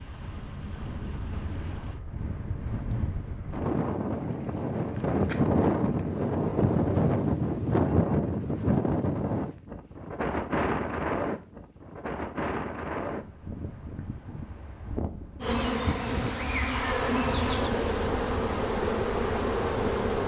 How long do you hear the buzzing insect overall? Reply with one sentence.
You can hear the buzzing insect for 5 seconds altogether.